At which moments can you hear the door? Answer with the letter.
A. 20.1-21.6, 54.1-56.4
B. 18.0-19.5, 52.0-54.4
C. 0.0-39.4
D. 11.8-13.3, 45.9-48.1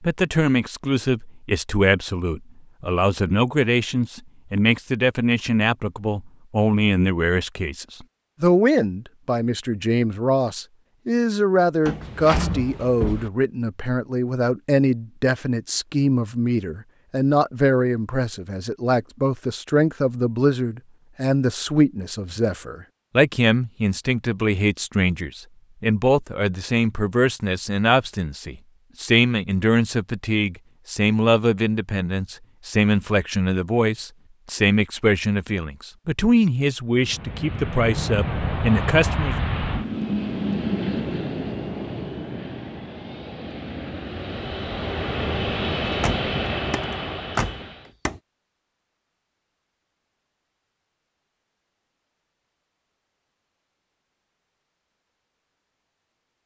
D.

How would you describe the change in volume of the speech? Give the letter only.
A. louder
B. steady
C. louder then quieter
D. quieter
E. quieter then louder
B.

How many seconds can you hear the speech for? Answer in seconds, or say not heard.
39 s.